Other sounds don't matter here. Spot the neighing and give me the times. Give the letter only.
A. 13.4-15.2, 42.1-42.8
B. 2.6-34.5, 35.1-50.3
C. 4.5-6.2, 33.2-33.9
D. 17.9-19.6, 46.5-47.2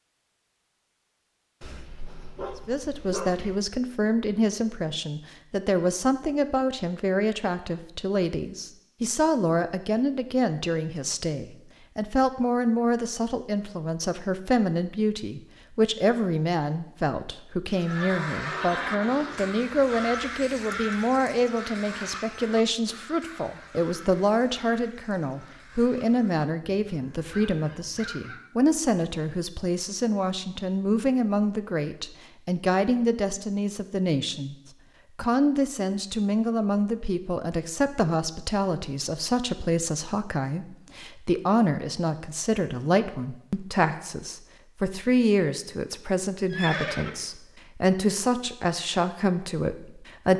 D.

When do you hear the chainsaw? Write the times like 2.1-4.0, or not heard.
not heard.